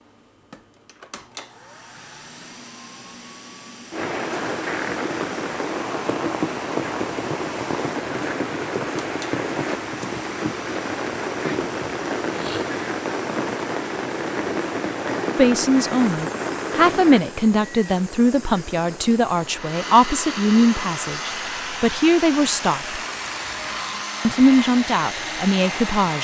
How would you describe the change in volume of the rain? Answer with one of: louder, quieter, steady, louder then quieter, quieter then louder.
quieter.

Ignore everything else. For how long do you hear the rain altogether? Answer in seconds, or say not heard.
22 s.